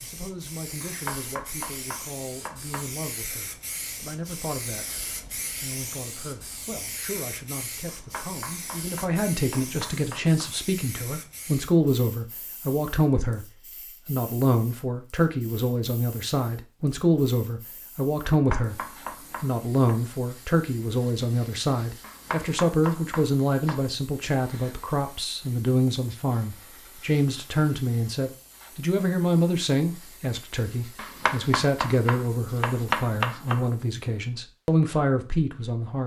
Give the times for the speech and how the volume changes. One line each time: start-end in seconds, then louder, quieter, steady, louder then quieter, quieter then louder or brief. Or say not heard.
0.0-36.0 louder.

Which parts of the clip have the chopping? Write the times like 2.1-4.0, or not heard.
0.8-2.9, 7.8-10.5, 18.3-19.9, 22.0-23.9, 30.9-33.6.